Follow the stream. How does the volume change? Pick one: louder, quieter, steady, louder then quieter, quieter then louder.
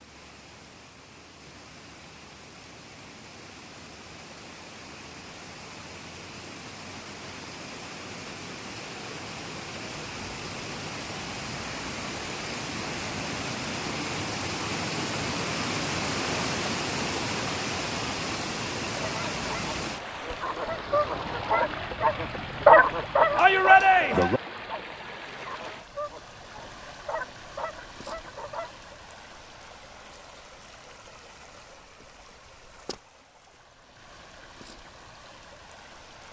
louder then quieter.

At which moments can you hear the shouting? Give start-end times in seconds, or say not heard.
23.4-24.4.